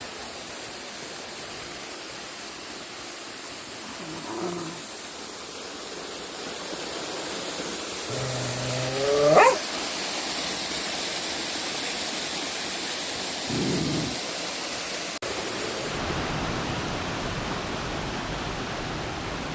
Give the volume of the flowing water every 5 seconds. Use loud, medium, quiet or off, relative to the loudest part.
medium, loud, loud, loud.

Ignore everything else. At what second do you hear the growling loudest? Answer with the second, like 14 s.
9 s.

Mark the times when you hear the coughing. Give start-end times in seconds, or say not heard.
not heard.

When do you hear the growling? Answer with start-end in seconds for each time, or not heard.
3.8-4.8, 8.1-9.6, 13.4-14.2.